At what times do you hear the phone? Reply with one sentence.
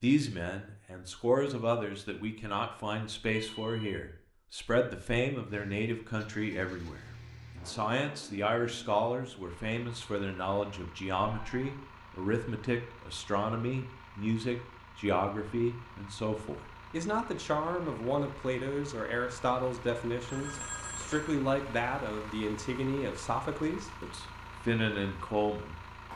You can hear the phone from 3.3 to 4.0 s, from 11.4 to 11.8 s and from 20.2 to 21.4 s.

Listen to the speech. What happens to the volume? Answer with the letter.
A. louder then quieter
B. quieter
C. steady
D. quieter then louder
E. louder
C.